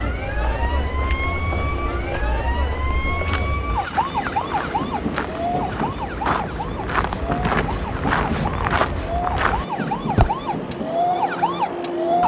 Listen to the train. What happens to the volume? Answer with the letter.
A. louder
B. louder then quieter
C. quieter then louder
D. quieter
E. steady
A.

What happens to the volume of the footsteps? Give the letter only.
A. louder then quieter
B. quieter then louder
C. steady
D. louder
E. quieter
D.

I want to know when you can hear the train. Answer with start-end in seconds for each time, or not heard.
0.0-12.2.